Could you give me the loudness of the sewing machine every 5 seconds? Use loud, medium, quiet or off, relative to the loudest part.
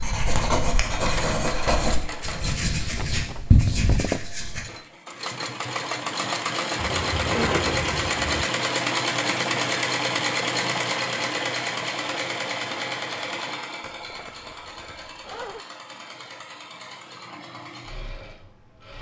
medium, loud, loud, quiet.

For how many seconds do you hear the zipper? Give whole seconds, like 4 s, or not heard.
5 s.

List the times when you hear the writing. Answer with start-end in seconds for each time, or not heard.
0.0-4.6.